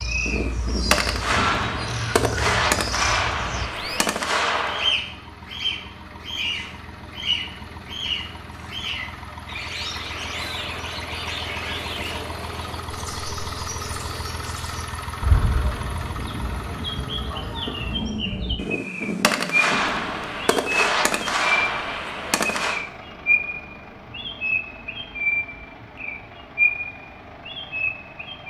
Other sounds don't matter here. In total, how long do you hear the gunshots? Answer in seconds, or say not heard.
9 s.